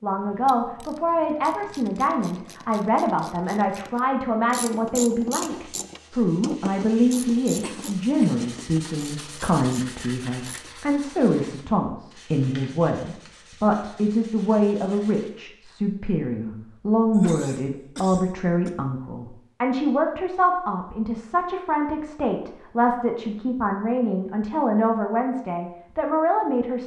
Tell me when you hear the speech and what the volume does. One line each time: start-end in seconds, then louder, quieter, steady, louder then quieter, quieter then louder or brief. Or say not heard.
0.0-26.8 steady.